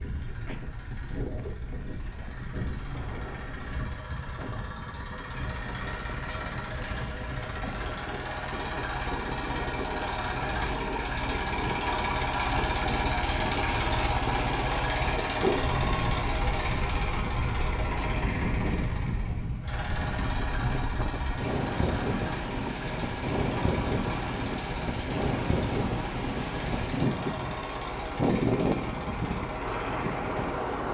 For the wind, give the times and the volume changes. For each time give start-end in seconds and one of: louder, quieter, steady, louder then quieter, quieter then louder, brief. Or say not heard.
0.1-30.8 louder.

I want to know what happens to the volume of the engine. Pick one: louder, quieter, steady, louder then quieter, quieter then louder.
louder then quieter.